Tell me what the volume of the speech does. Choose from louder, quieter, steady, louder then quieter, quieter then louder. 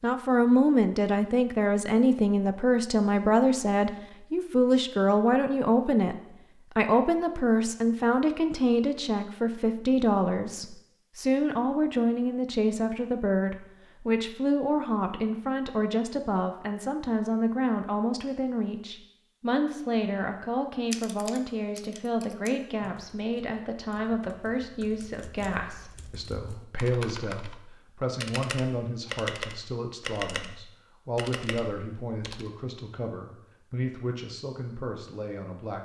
quieter.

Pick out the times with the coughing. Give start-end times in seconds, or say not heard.
not heard.